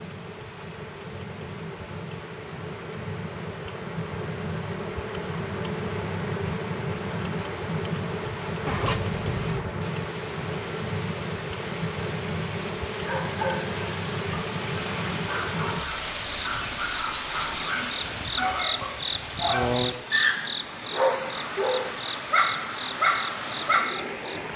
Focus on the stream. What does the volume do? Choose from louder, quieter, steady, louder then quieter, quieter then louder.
louder.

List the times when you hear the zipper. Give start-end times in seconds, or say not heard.
8.7-9.7.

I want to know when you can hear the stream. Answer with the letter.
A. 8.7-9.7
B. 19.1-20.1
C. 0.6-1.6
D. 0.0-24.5
D.